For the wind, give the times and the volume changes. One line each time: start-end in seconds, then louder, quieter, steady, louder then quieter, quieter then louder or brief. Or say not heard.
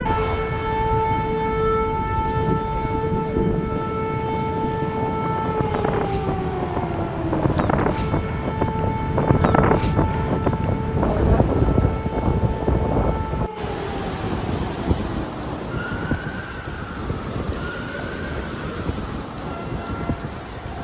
0.0-20.7 louder then quieter.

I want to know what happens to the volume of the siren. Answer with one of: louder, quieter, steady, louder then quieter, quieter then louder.
quieter.